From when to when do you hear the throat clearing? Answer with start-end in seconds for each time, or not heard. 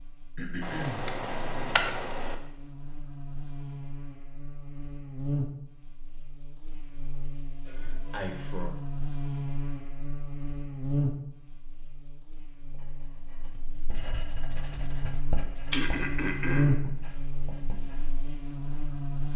0.3-1.1, 7.7-8.8, 15.7-16.8.